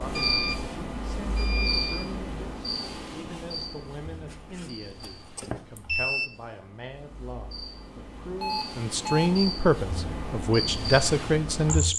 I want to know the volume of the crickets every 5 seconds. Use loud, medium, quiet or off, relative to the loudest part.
loud, medium, loud.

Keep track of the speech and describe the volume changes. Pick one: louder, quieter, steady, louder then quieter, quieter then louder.
louder.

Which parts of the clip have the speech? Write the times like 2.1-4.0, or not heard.
0.0-11.9.